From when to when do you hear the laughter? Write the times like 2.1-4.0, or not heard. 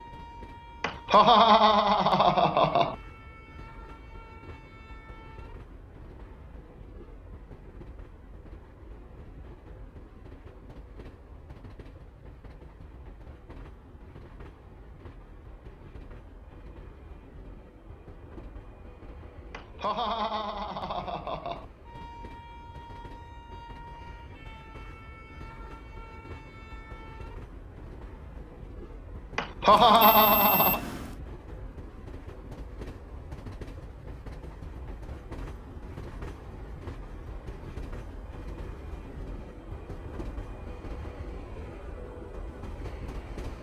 0.8-3.0, 19.5-21.6, 29.4-30.8.